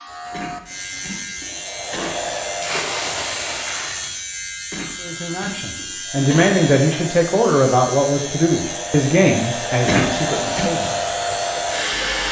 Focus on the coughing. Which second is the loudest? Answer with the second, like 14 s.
10 s.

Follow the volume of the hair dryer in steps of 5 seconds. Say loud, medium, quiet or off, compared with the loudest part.
medium, medium, loud.